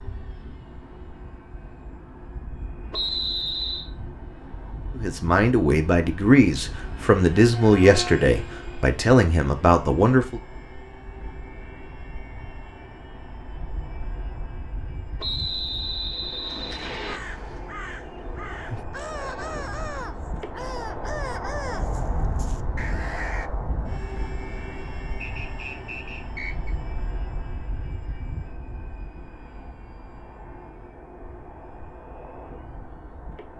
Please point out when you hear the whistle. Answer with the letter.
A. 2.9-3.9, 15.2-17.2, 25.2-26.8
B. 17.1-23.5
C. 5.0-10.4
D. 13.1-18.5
A.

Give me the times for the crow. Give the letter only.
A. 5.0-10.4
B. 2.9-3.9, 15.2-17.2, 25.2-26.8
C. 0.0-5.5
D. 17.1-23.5
D.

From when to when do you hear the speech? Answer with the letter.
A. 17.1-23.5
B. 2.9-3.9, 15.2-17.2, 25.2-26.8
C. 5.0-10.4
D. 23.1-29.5
C.